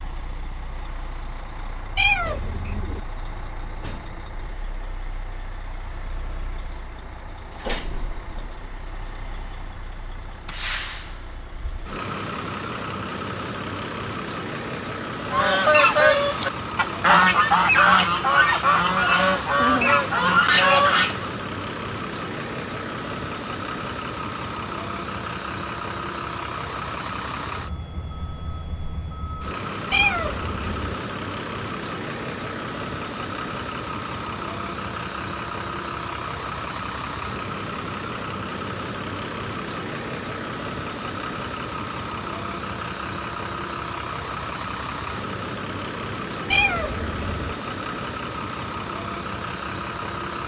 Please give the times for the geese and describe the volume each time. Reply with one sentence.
The geese can be heard from 15.2 to 21.3 s, at a steady volume.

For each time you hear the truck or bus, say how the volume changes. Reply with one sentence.
The truck or bus can be heard from 0.0 to 50.4 s, getting louder.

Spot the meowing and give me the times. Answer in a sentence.
The meowing can be heard from 1.9 to 3.0 s, from 29.9 to 30.9 s and from 46.5 to 47.5 s.